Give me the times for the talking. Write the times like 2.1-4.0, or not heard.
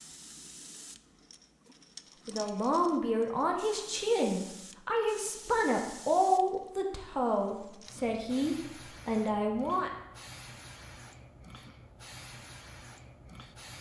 2.2-9.9.